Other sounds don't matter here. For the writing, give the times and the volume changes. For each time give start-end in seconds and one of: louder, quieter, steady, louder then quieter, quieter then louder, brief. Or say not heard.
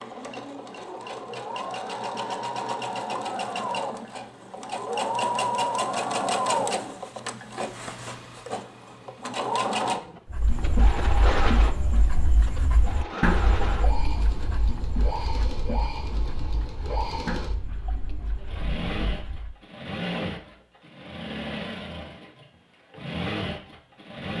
10.3-19.6 quieter.